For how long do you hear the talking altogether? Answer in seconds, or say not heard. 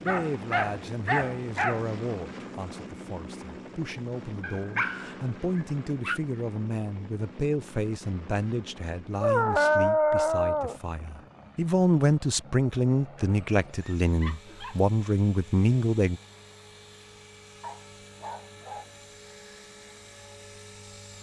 16 s.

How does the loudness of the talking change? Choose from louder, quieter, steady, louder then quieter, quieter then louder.
louder.